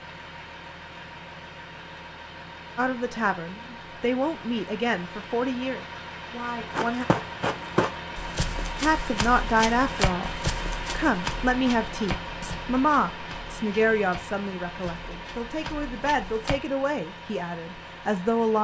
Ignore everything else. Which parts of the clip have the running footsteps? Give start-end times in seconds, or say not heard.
6.7-16.6.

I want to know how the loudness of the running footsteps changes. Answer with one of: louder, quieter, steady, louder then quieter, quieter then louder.
quieter.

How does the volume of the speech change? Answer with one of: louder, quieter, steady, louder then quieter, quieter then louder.
steady.